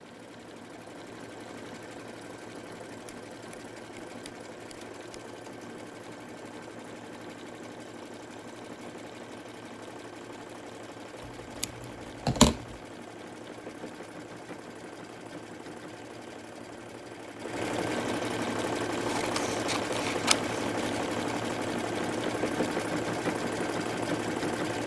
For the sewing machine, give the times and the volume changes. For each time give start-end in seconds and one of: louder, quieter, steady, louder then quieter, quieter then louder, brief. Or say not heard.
0.0-24.8 louder.